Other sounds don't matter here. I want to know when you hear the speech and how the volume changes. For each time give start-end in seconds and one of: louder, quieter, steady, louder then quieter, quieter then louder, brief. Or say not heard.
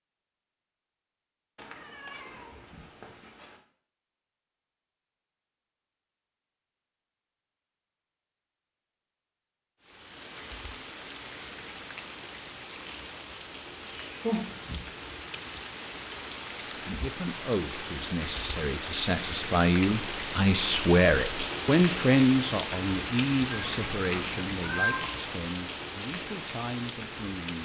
16.8-27.6 louder then quieter.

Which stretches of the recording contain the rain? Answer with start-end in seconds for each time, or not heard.
9.8-27.6.